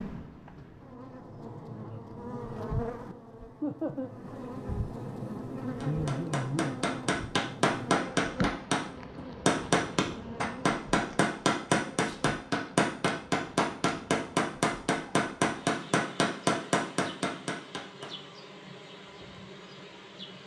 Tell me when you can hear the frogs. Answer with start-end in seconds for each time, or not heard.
not heard.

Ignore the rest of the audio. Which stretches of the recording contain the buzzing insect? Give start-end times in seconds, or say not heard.
0.0-20.4.